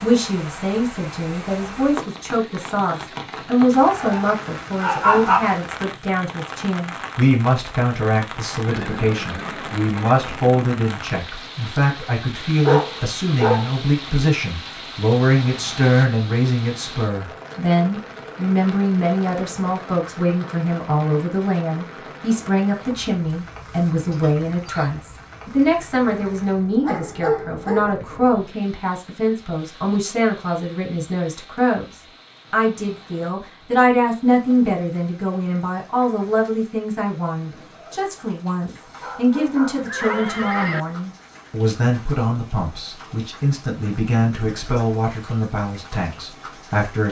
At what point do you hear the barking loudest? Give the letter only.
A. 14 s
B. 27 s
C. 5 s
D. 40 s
C.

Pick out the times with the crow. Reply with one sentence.
You can't hear the crow here.